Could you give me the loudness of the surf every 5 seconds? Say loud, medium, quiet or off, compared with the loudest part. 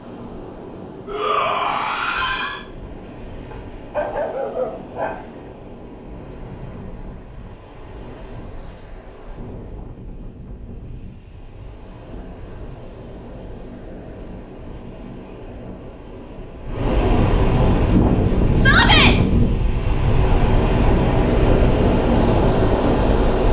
quiet, quiet, quiet, loud, loud.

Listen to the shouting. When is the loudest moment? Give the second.
19 s.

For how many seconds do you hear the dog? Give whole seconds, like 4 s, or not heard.
2 s.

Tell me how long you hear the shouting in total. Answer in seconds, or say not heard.
2 s.